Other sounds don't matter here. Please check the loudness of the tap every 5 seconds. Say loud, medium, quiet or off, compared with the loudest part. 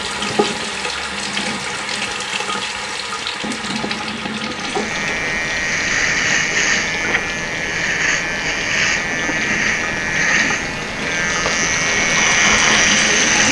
loud, medium, loud.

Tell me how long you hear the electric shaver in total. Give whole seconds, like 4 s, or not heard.
9 s.